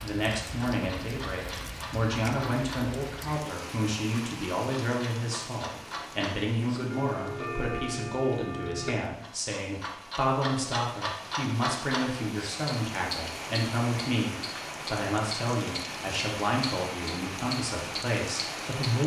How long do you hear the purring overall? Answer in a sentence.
You can't hear the purring here.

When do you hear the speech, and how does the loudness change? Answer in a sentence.
You can hear the speech from 0.0 to 19.0 s, at a steady volume.